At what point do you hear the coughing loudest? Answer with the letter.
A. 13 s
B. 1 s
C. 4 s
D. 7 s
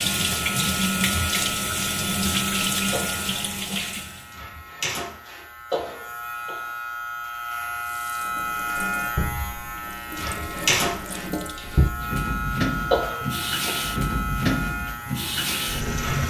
A.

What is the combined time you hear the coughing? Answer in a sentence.
The coughing can be heard for 3 seconds in total.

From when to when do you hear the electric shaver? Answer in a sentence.
The electric shaver can be heard from 0.0 to 16.2 s.